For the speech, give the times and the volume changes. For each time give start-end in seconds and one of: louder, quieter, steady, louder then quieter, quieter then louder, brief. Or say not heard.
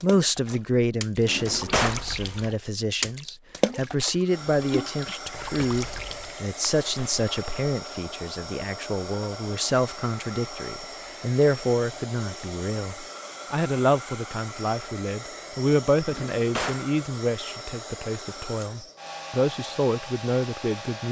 0.0-21.0 steady.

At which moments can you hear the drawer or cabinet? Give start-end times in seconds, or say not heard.
1.2-2.0, 16.1-16.9.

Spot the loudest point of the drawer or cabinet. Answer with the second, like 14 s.
2 s.